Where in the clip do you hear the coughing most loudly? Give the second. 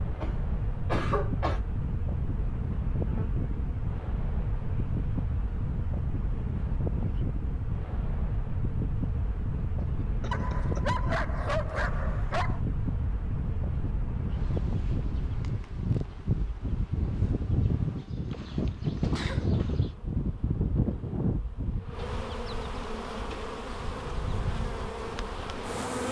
1 s.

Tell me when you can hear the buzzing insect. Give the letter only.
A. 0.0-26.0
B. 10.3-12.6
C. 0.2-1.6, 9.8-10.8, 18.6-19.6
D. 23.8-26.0
A.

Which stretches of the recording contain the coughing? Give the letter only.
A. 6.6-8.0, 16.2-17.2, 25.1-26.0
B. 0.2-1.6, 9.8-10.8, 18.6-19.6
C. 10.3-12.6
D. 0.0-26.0
B.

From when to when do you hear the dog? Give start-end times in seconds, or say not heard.
10.3-12.6.